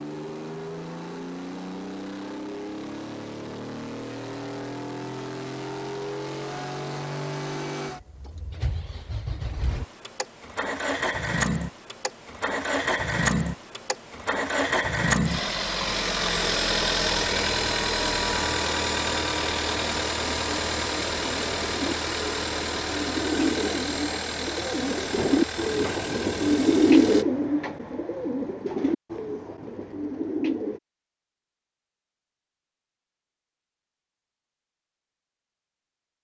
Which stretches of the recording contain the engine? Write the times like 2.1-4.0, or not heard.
0.0-27.2.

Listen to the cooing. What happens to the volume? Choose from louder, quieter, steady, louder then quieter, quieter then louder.
louder then quieter.